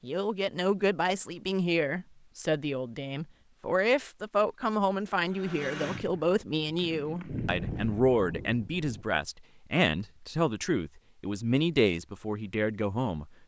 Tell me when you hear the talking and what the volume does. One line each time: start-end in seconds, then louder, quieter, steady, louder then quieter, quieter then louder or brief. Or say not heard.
0.0-13.3 steady.